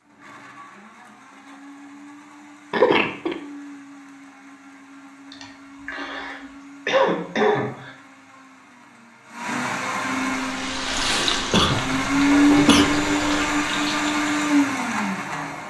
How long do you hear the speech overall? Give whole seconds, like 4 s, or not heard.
not heard.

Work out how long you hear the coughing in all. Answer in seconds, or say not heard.
5 s.